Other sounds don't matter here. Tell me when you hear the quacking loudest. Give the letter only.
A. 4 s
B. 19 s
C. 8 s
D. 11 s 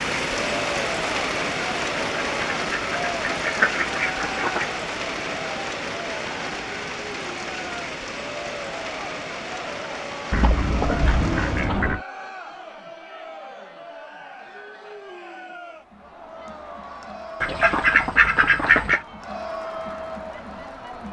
B.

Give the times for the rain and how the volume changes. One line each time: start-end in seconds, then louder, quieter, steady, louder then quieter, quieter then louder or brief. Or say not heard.
0.0-12.0 quieter.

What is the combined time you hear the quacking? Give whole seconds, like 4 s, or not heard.
6 s.